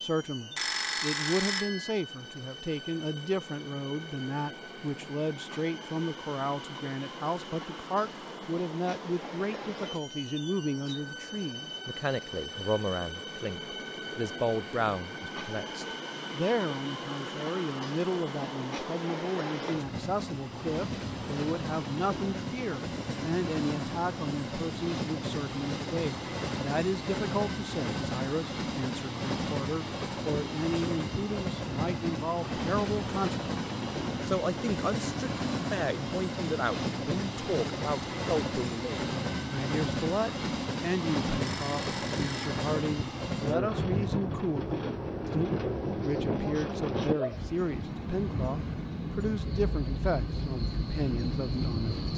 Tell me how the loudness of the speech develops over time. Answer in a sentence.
The volume of the speech stays about the same.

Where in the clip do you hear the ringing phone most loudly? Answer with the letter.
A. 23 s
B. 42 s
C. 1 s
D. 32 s
C.